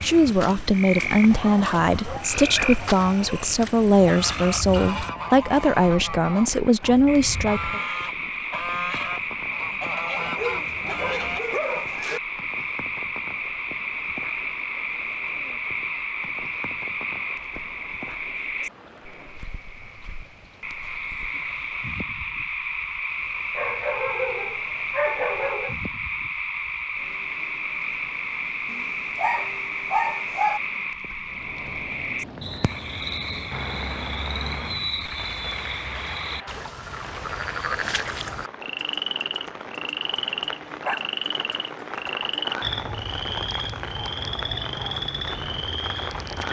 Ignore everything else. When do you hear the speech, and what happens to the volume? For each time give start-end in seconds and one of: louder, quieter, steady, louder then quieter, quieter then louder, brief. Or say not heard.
0.0-7.8 steady.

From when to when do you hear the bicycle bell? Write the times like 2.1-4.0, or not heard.
not heard.